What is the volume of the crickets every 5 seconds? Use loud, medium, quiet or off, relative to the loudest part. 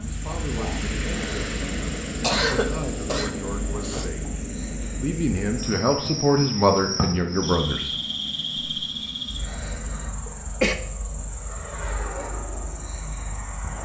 medium, loud, medium.